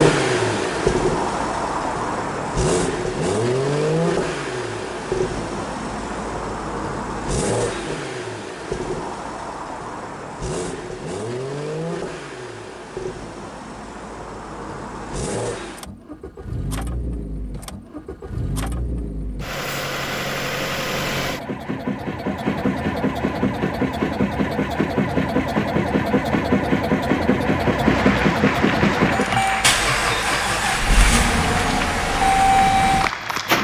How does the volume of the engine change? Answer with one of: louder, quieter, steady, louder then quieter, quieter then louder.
quieter then louder.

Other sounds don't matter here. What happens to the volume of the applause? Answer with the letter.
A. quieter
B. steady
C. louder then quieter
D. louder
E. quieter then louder
B.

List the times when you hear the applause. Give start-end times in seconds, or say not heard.
27.4-33.5.